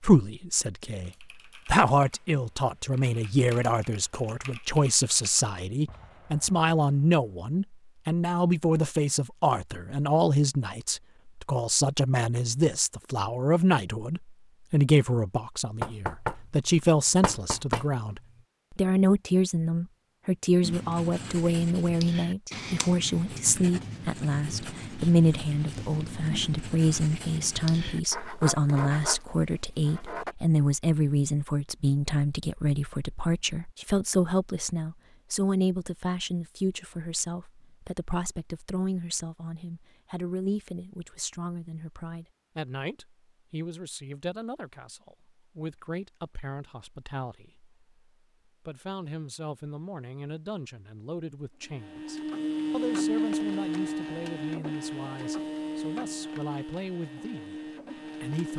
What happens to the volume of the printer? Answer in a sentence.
The volume of the printer goes down.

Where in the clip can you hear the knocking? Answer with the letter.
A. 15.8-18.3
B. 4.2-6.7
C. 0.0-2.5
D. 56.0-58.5
A.